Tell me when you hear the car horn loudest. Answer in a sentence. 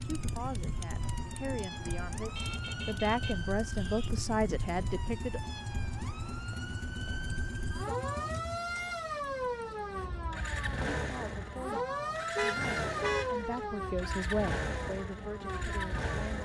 The volume of the car horn peaks at 13 seconds.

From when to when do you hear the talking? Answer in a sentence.
You can hear the talking from 0.0 to 5.4 s and from 10.9 to 16.4 s.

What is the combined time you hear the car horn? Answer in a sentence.
You can hear the car horn for 3 seconds altogether.